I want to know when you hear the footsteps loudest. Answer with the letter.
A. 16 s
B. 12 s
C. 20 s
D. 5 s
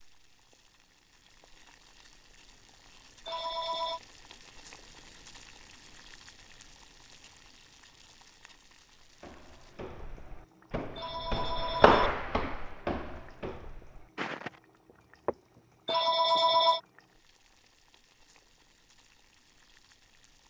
B.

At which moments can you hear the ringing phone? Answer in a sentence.
The ringing phone can be heard from 3.2 to 4.0 s, from 10.9 to 12.1 s and from 15.8 to 16.8 s.